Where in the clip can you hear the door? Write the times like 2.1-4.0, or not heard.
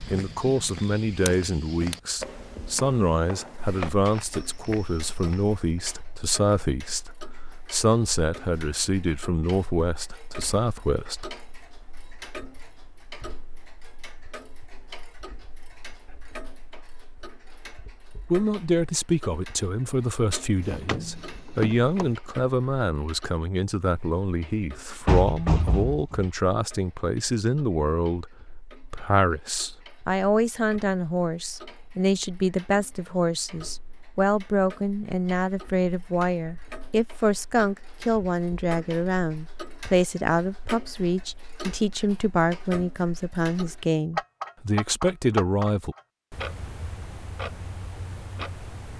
20.6-22.1, 25.1-26.3.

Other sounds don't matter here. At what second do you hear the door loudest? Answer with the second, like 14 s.
26 s.